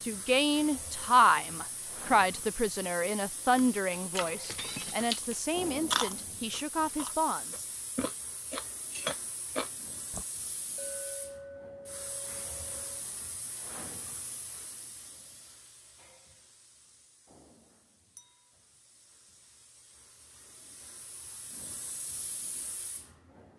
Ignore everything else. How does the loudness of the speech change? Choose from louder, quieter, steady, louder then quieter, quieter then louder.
quieter.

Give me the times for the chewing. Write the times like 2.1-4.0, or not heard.
3.5-10.2.